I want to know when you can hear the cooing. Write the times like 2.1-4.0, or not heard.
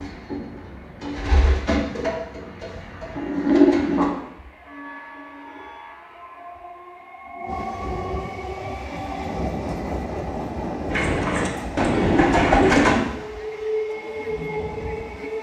0.0-4.1, 10.9-13.0.